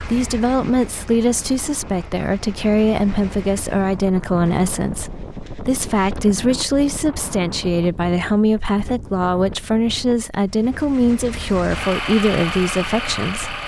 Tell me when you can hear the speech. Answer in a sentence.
The speech can be heard from 0.0 to 13.6 s.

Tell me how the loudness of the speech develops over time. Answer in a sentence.
The loudness of the speech stays about the same.